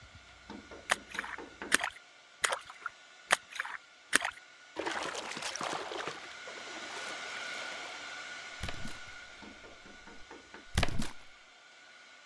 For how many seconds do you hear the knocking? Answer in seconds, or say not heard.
5 s.